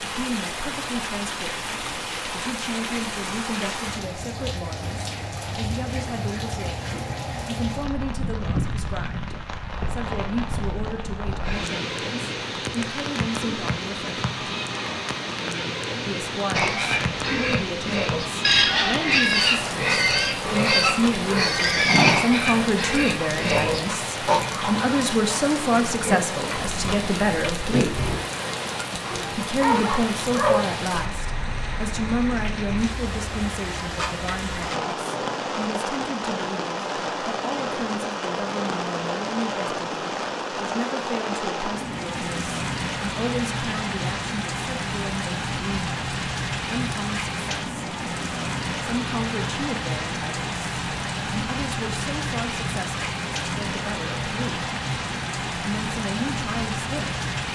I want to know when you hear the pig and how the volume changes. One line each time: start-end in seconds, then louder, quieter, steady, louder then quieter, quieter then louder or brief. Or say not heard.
16.5-28.1 quieter.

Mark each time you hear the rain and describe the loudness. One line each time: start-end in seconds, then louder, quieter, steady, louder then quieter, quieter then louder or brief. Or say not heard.
0.0-57.5 steady.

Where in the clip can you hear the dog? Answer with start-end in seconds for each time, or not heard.
29.1-30.6.